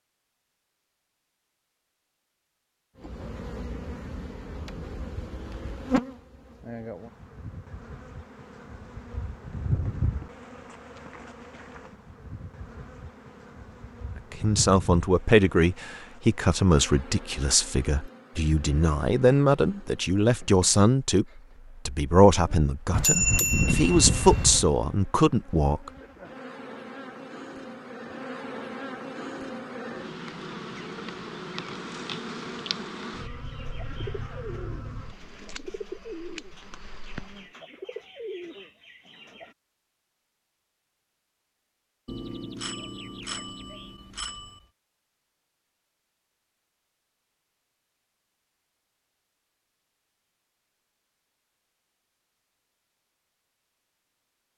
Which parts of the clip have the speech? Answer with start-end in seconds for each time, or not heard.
14.3-21.2, 21.9-25.9.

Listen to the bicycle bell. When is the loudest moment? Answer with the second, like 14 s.
23 s.